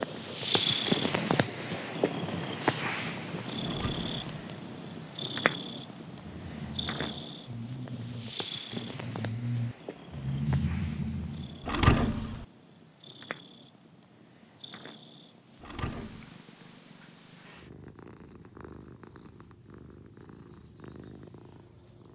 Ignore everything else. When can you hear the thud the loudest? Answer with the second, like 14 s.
12 s.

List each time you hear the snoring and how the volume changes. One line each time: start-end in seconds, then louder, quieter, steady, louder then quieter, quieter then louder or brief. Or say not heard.
6.1-11.7 louder.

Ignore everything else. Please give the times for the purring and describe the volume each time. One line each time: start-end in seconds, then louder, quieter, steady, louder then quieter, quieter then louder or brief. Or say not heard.
0.0-22.0 quieter.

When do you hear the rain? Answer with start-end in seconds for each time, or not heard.
not heard.